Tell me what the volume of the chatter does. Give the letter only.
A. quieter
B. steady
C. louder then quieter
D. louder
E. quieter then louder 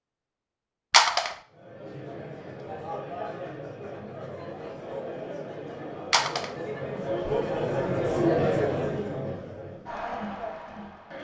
C.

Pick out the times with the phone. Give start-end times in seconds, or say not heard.
0.9-1.4, 6.1-6.5.